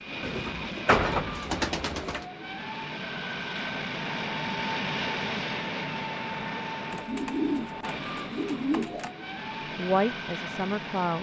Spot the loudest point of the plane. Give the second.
5 s.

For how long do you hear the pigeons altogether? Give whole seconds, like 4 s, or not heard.
4 s.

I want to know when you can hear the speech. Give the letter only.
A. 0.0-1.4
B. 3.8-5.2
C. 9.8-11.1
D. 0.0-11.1
C.